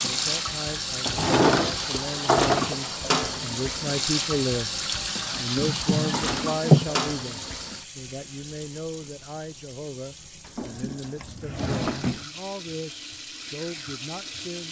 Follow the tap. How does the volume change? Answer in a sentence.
The volume of the tap goes down, then up.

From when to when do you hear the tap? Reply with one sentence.
The tap can be heard from 0.0 to 14.6 s.